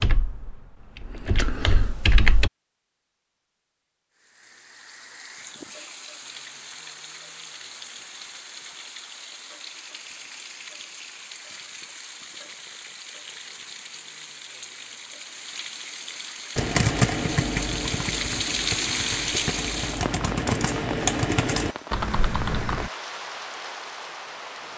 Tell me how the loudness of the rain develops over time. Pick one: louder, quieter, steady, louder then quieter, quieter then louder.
louder then quieter.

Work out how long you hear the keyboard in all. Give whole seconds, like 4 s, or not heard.
9 s.